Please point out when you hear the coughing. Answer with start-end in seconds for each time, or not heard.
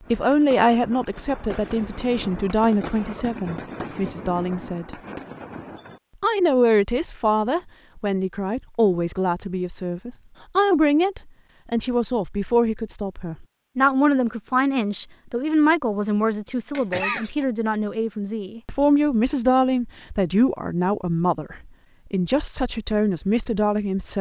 16.7-17.4.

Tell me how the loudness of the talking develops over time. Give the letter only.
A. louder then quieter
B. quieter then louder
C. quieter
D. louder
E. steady
E.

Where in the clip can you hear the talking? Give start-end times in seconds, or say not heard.
0.1-5.0, 6.2-24.1.